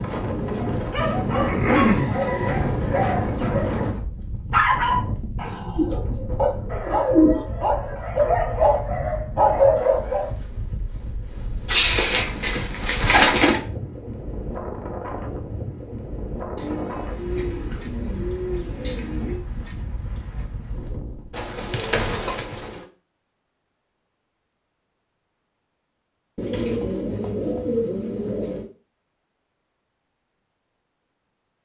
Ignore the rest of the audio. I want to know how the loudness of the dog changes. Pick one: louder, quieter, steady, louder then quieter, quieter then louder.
louder.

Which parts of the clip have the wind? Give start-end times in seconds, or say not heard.
0.0-21.5.